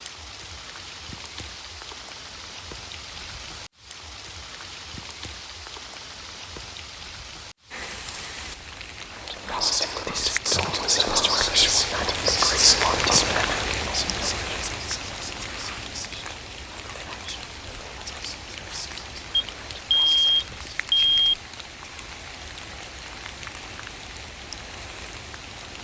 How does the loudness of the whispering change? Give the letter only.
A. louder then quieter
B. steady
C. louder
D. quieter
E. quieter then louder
D.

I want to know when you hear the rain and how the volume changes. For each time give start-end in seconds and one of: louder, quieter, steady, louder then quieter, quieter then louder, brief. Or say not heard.
0.0-25.8 louder then quieter.